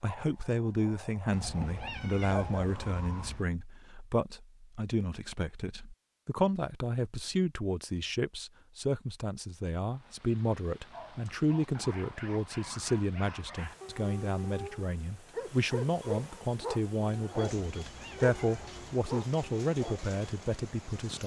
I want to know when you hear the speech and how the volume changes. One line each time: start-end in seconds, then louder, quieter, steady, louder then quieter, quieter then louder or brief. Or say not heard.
0.0-21.2 steady.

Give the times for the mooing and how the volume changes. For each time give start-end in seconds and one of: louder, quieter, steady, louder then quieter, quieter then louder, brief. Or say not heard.
not heard.